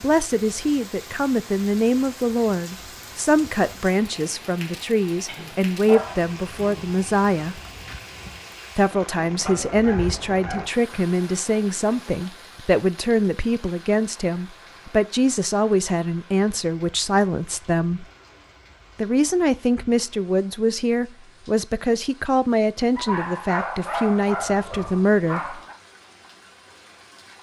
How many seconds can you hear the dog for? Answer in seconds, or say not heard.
6 s.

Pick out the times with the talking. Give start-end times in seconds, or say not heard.
0.0-7.6, 8.8-18.1, 18.9-25.6.